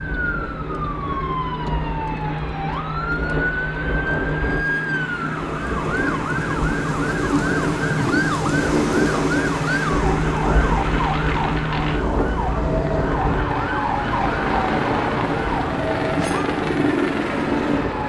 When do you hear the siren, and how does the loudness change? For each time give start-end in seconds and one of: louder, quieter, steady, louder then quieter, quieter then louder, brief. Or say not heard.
0.0-16.5 steady.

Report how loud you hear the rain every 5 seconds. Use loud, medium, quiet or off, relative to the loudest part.
medium, loud, loud, medium.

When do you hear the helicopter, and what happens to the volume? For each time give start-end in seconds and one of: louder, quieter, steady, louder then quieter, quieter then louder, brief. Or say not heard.
0.0-18.0 louder.